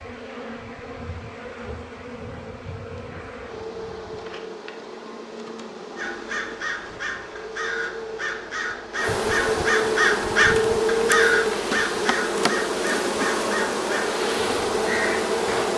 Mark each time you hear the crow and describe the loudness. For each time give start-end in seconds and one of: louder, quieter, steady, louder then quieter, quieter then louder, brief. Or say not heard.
6.0-15.7 louder then quieter.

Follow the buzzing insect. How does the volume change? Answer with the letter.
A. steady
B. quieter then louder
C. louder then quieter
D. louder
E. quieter
D.